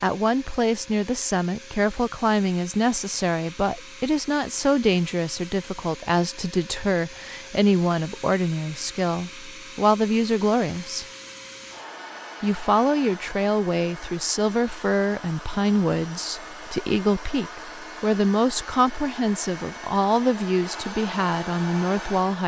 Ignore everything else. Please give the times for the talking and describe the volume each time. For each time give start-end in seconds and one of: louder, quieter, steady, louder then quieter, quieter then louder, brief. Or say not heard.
0.0-11.1 steady
12.4-22.4 steady.